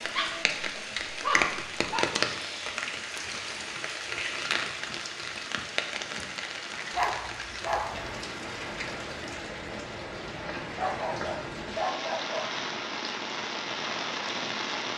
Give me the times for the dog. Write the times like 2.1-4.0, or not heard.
0.1-2.0, 6.9-8.2, 10.8-12.6.